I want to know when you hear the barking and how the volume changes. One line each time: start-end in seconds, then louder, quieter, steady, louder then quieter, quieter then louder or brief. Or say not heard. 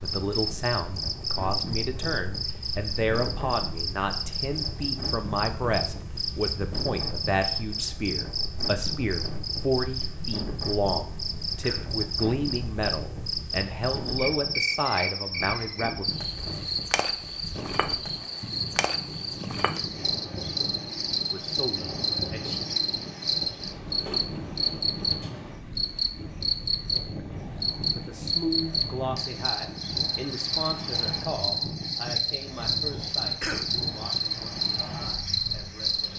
not heard.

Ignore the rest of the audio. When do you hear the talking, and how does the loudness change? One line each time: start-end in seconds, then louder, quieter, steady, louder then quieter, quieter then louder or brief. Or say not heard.
0.0-16.1 steady
21.3-22.6 brief
27.9-36.1 quieter.